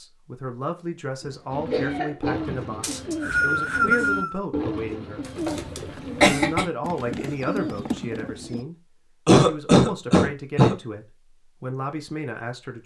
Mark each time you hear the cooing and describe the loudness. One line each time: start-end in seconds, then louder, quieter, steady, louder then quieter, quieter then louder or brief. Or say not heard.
1.5-8.7 steady.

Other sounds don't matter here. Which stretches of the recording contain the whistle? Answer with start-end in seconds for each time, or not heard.
2.8-4.4.